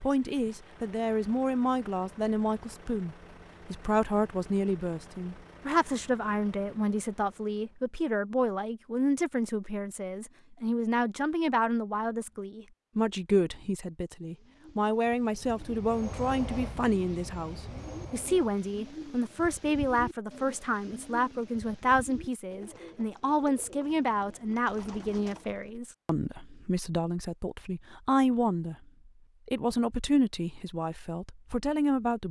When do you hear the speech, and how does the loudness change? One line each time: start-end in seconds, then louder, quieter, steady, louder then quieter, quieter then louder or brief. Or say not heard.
0.0-28.8 steady
29.4-32.2 brief.